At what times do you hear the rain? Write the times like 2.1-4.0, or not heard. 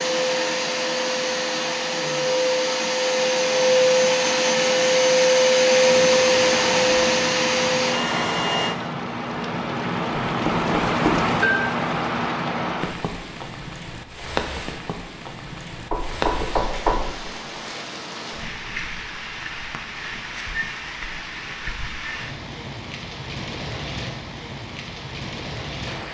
5.8-26.0.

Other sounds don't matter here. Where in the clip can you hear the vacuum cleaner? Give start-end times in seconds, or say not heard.
0.0-8.8.